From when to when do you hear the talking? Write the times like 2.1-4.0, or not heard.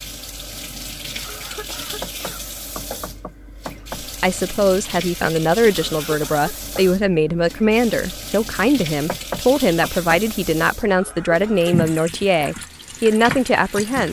4.0-14.0.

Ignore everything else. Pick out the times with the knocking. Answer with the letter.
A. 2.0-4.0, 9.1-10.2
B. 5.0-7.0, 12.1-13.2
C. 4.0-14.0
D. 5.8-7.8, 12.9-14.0
A.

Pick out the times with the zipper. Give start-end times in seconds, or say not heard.
not heard.